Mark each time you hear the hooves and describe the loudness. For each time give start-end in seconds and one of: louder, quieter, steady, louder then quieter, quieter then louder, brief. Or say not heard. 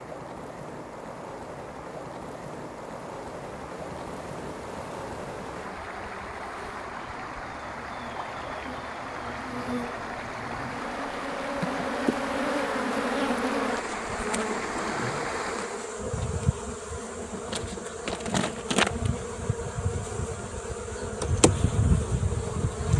not heard.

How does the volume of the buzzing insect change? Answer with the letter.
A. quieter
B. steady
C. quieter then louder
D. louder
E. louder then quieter
D.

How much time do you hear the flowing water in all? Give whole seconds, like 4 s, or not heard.
16 s.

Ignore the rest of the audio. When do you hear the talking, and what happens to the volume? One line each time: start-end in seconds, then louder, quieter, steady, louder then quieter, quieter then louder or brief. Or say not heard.
not heard.